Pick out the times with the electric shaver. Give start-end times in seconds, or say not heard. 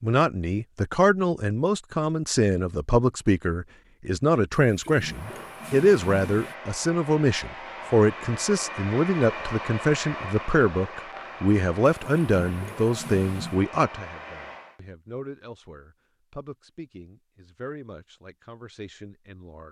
not heard.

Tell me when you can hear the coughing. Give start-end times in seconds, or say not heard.
not heard.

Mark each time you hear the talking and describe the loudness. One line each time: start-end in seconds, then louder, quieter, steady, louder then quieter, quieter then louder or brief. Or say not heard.
0.0-19.6 quieter.